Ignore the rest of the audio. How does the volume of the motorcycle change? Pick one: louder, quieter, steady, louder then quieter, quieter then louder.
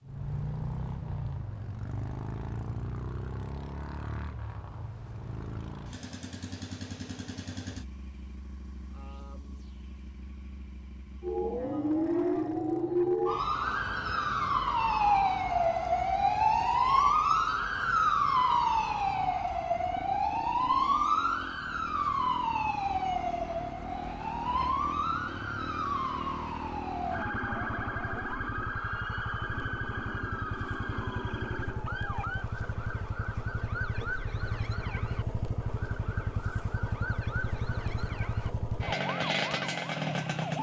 quieter then louder.